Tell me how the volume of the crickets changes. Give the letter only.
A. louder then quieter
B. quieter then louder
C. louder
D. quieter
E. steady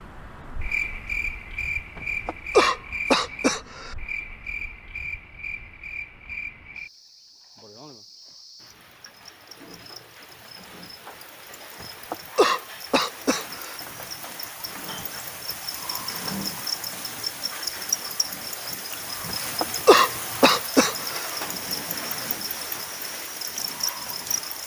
B.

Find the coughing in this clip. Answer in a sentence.
You can hear the coughing from 1.9 to 4.0 s, from 11.8 to 13.8 s and from 19.3 to 21.2 s.